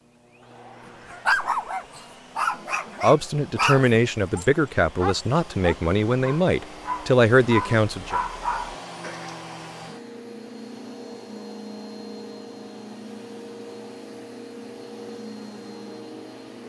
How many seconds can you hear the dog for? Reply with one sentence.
The dog can be heard for 8 seconds in total.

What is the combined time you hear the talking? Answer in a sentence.
You can hear the talking for 5 seconds altogether.